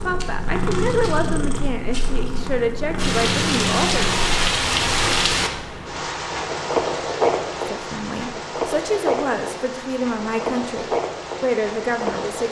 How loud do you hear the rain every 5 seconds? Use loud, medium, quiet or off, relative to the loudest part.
loud, loud, medium.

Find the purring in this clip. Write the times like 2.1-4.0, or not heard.
0.0-5.3.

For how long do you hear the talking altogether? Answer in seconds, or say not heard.
9 s.